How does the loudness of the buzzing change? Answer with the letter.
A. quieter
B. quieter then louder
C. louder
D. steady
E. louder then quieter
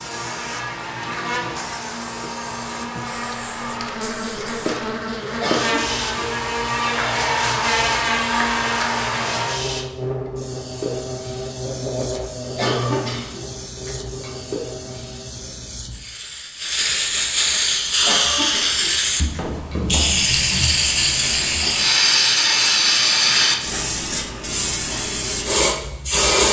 E.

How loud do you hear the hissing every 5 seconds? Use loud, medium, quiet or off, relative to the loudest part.
quiet, quiet, quiet, loud, loud, loud.